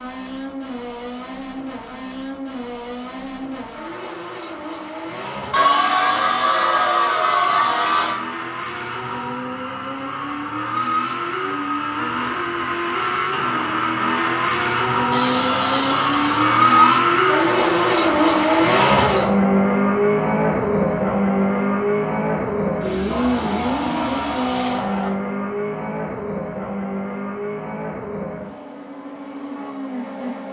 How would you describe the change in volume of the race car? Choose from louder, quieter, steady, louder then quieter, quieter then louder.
louder then quieter.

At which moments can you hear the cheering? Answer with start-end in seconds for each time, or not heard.
5.5-8.2, 15.1-16.9, 23.1-25.1.